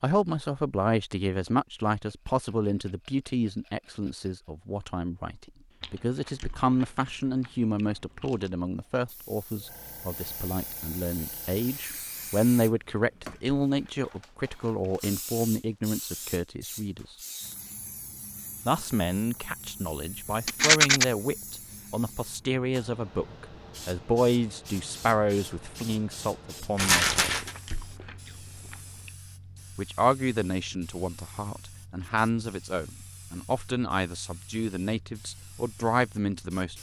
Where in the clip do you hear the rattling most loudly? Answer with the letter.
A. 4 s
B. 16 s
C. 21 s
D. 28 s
C.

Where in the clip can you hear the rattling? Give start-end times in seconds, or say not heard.
1.9-4.5, 20.4-21.1, 26.8-27.6.